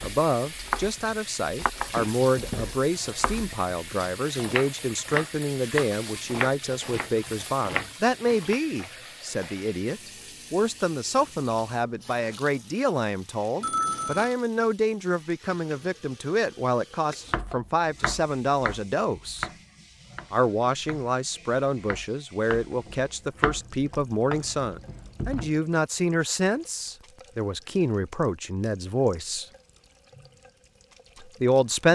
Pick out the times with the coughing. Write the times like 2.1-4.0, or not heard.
not heard.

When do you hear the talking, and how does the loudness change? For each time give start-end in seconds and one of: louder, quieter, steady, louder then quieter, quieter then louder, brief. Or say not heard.
0.0-19.5 steady
20.3-29.4 steady
31.2-31.8 brief.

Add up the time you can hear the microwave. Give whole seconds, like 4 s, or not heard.
not heard.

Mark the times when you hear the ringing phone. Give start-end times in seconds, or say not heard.
13.6-14.3.